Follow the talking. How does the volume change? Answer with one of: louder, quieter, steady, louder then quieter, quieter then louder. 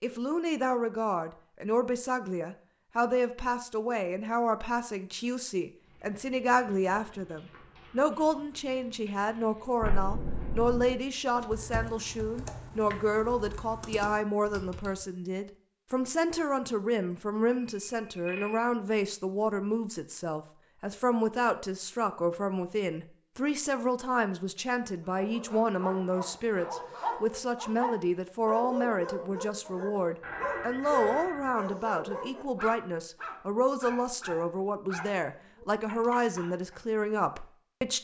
steady.